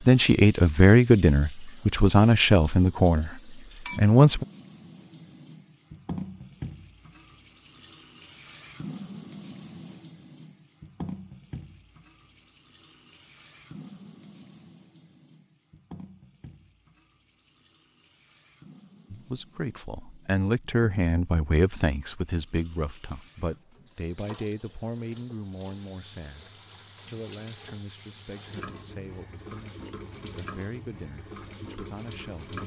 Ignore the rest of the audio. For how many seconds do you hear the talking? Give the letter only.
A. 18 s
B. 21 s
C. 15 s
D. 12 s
A.